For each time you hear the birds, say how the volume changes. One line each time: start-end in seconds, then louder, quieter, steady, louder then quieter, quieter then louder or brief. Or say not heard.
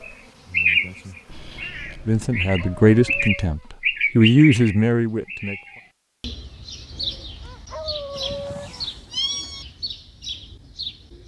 0.0-11.2 quieter.